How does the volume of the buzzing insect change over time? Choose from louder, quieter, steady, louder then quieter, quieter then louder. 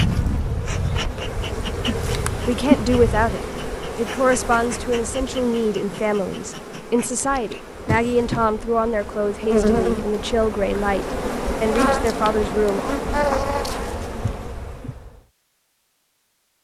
quieter then louder.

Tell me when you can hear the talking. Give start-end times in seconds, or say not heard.
2.4-12.9.